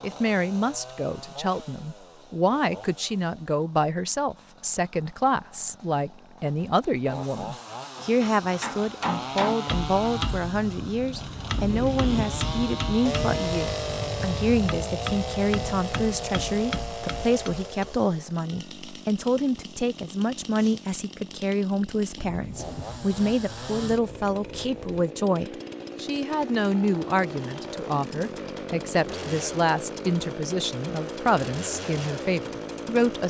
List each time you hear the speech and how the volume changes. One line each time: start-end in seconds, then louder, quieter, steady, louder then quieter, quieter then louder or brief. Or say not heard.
0.0-33.2 steady.